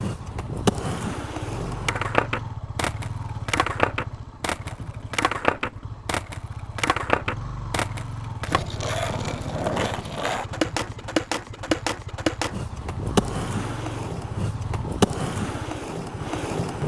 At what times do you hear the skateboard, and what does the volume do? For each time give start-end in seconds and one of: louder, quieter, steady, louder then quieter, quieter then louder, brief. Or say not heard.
0.0-16.8 steady.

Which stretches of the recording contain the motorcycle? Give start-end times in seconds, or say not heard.
0.1-16.6.